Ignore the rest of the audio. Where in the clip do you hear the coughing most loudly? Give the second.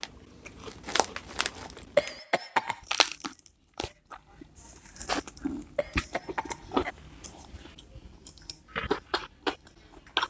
2 s.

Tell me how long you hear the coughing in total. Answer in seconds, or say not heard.
2 s.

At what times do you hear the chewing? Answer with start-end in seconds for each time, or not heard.
0.0-2.2, 2.9-10.2.